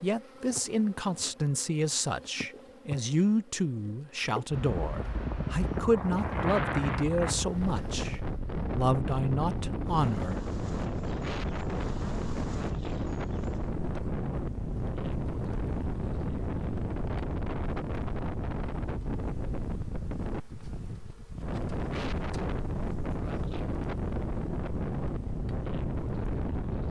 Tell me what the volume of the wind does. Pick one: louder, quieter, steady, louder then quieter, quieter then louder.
steady.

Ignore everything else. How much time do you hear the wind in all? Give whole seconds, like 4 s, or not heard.
22 s.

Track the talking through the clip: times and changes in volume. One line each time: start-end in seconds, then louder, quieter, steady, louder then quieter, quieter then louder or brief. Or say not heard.
0.0-10.4 steady.